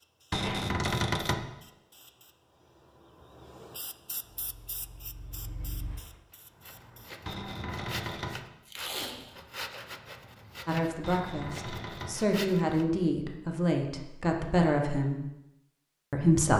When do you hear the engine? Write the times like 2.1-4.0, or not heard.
4.3-6.2.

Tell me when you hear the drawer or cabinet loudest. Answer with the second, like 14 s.
1 s.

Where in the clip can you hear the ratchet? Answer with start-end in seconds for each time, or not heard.
not heard.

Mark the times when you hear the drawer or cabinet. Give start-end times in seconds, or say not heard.
0.3-1.4, 7.2-8.4, 11.0-12.2.